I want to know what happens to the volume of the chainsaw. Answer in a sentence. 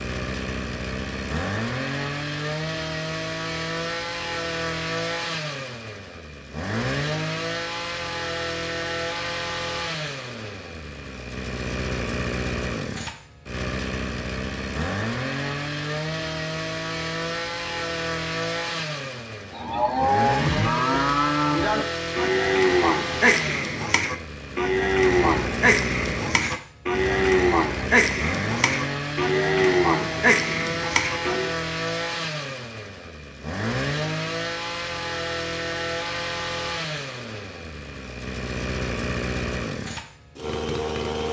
The loudness of the chainsaw stays about the same.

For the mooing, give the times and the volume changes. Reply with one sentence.
The mooing can be heard from 19.5 to 31.6 s, at a steady volume.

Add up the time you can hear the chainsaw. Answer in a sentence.
The chainsaw can be heard for 41 seconds in total.